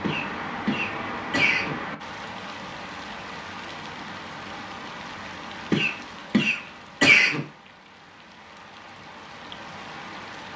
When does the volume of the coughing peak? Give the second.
7 s.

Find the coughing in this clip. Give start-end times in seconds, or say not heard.
0.0-1.8, 5.7-7.4.